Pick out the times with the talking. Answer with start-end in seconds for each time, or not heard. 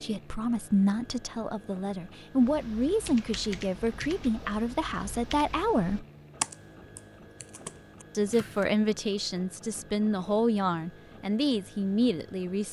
0.0-6.0, 8.2-12.6.